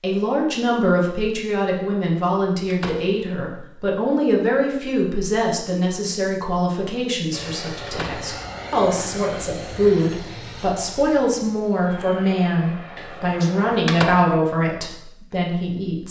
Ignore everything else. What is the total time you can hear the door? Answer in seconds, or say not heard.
2 s.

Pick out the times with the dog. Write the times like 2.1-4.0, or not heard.
not heard.